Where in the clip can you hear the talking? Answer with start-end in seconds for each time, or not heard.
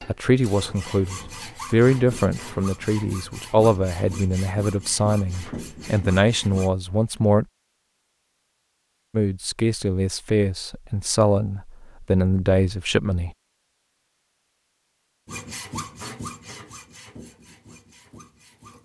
0.1-7.5, 9.1-13.3.